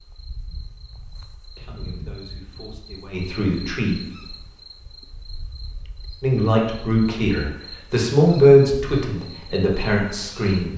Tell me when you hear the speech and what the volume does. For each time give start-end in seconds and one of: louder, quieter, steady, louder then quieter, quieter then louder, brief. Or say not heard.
1.6-4.0 brief
6.2-10.7 louder then quieter.